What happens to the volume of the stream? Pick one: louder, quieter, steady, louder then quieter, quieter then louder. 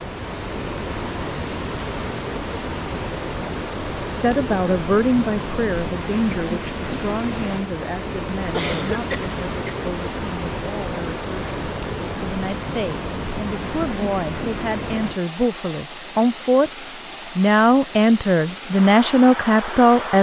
steady.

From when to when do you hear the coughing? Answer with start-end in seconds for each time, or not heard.
8.5-9.8.